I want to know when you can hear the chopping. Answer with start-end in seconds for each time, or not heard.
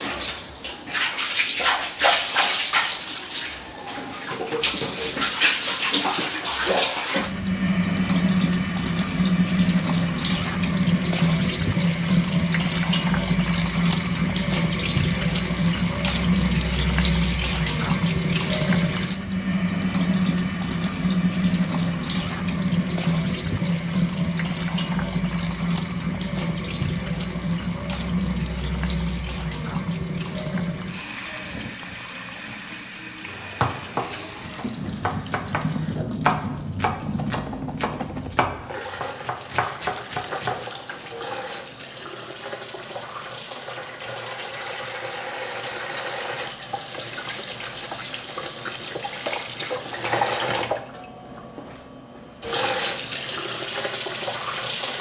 33.2-40.6.